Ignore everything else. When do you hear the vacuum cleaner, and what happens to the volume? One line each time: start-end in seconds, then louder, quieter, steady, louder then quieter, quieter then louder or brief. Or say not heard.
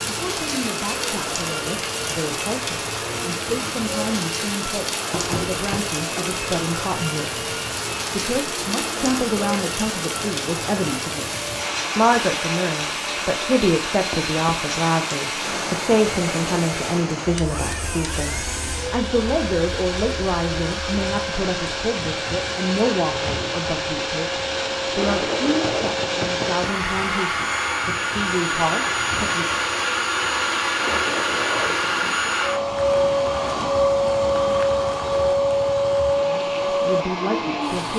0.0-37.9 louder.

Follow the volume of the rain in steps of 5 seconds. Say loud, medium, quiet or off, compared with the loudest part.
loud, loud, loud, loud, medium, medium, medium, medium.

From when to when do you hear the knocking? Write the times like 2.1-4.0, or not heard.
5.1-5.8, 14.1-14.7, 25.6-26.8.